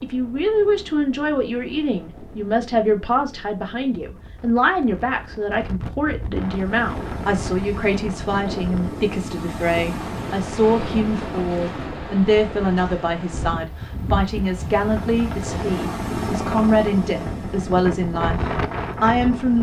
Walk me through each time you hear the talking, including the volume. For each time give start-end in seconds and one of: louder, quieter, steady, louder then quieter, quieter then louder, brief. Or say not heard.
0.0-19.5 steady.